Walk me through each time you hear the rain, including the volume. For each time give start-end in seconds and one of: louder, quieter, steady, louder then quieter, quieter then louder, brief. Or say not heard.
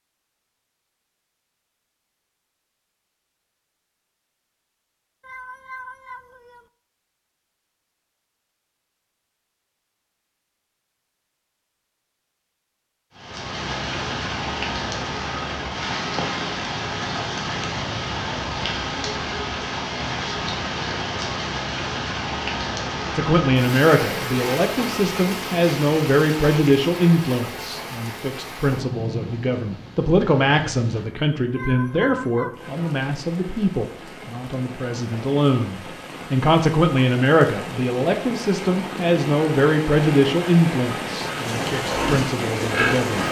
13.2-43.2 quieter then louder.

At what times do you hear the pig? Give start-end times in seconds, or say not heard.
41.4-43.2.